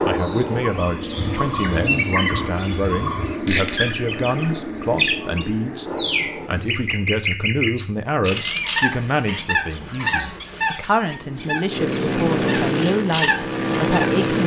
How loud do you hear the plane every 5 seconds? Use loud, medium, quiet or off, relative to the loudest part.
medium, medium, loud.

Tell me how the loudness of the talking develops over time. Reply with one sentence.
The loudness of the talking stays about the same.